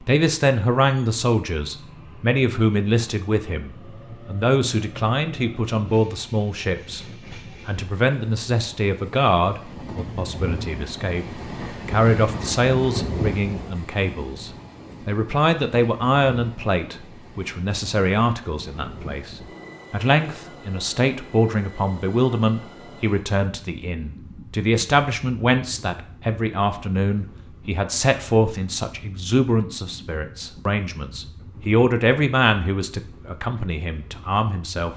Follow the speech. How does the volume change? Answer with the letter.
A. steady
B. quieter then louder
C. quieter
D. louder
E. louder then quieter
A.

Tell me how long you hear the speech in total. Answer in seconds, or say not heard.
35 s.